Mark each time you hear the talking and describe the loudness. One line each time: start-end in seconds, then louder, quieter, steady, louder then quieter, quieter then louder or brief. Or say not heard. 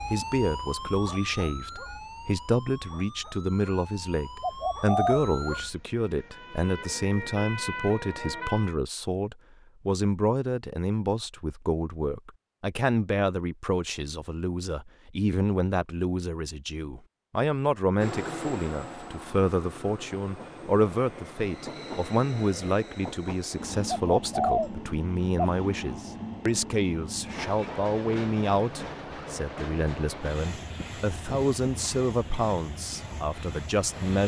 0.1-34.2 steady.